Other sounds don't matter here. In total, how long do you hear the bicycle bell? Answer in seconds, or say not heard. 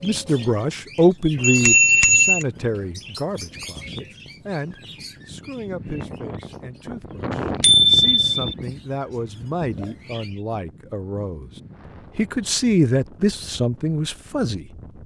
2 s.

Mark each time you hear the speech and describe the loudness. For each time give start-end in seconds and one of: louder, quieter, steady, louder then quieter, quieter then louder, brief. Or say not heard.
0.0-11.5 quieter then louder
12.2-14.7 brief.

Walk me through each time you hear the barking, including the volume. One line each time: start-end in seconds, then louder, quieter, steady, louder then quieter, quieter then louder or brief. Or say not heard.
not heard.